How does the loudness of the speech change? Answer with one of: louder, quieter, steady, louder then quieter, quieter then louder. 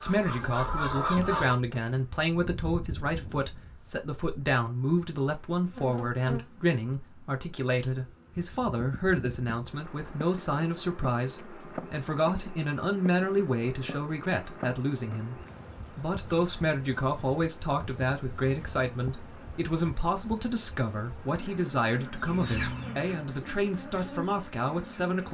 steady.